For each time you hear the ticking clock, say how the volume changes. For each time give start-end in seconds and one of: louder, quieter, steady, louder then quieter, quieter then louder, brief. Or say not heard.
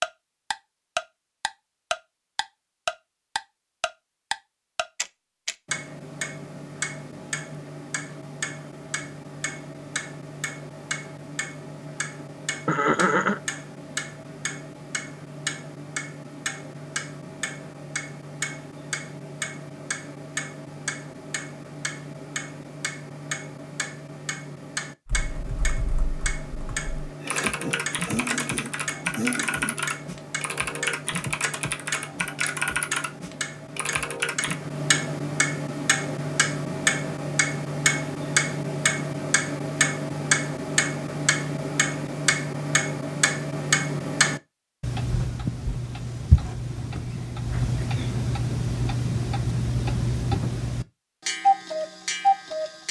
0.0-52.8 louder.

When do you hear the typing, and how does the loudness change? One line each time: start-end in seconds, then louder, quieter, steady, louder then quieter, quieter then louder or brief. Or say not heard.
25.1-34.5 louder.